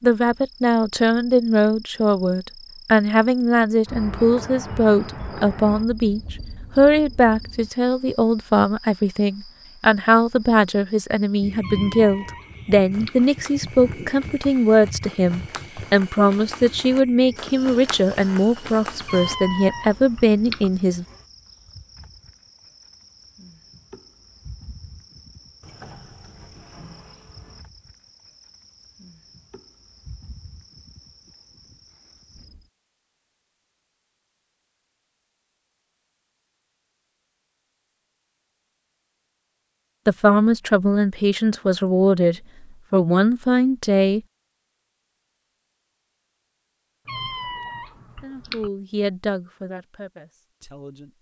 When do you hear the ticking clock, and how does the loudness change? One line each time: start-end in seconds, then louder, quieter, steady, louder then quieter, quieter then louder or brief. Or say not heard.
not heard.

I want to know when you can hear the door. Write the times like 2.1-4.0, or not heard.
25.6-27.6.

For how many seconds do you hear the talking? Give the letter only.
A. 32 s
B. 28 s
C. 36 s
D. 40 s
B.